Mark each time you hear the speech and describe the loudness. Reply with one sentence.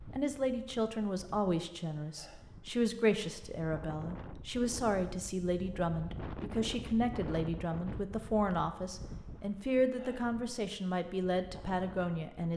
You can hear the speech from 0.1 to 12.5 s, at a steady volume.